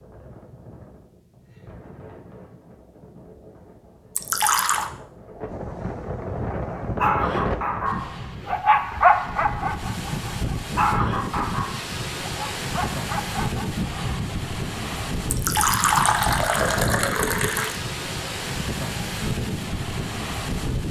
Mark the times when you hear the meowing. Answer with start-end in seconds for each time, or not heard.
not heard.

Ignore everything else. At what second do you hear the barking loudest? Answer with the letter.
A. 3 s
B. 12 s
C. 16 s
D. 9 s
D.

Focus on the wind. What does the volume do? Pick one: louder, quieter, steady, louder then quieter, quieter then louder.
louder.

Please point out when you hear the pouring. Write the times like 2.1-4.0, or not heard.
4.2-4.9, 15.3-17.8.